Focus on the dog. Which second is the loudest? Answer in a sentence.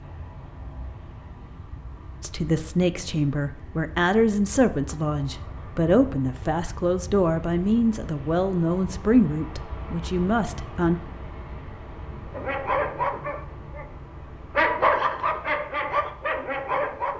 The loudest moment of the dog is at 15 seconds.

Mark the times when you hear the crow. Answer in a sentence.
The crow can't be heard in this clip.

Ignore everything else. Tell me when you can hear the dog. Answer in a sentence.
The dog can be heard from 12.3 to 13.8 s and from 14.6 to 17.1 s.